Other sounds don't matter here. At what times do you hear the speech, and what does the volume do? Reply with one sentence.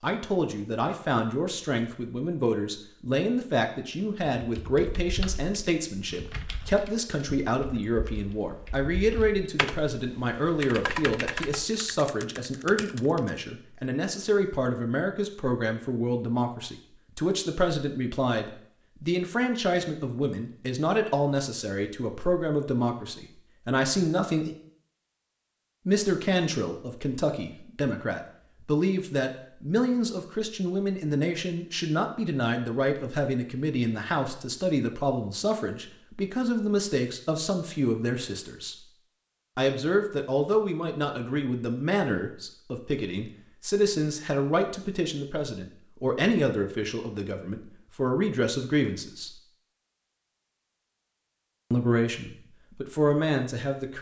The speech can be heard from 0.0 to 24.6 s, at a steady volume; from 25.9 to 38.8 s, at a steady volume; from 39.5 to 49.3 s, at a steady volume; and briefly from 51.7 to 53.9 s.